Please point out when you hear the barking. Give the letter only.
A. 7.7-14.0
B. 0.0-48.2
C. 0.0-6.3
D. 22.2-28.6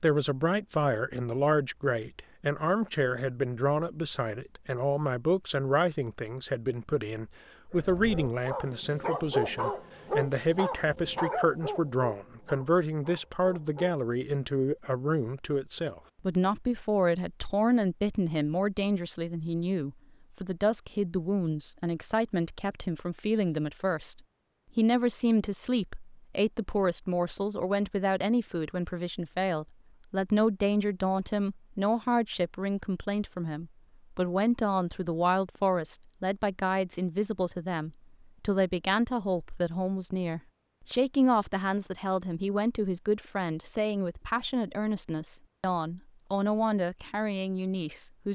A.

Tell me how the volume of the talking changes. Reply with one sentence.
The volume of the talking stays about the same.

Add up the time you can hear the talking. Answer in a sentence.
You can hear the talking for 48 seconds altogether.